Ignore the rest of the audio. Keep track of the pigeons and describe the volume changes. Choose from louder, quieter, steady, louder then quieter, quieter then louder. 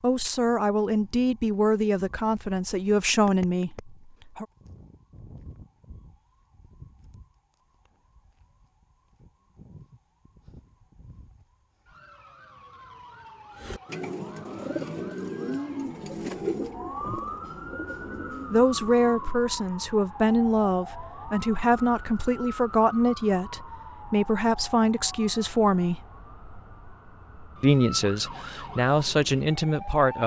quieter.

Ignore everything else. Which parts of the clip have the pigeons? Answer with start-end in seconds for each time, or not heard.
13.6-19.4.